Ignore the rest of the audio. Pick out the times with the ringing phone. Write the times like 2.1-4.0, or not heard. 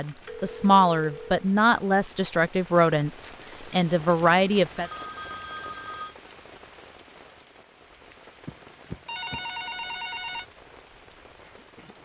0.2-1.4, 4.2-6.2, 8.4-10.4.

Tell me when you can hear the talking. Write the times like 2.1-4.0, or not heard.
0.0-4.9.